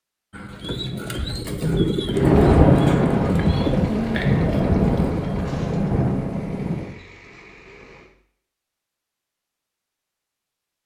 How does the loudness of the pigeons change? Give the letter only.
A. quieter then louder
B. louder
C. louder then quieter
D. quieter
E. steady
C.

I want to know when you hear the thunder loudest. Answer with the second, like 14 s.
3 s.